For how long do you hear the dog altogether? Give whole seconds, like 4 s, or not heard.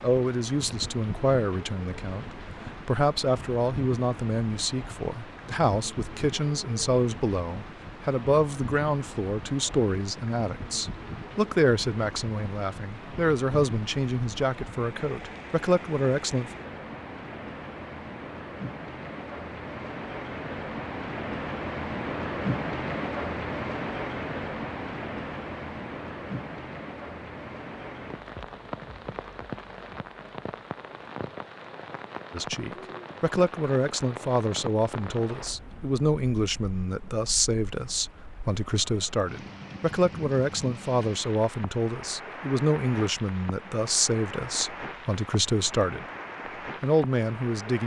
not heard.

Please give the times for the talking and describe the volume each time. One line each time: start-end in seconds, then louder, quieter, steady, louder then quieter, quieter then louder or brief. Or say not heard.
0.0-16.5 steady
32.3-46.0 steady
46.8-47.8 brief.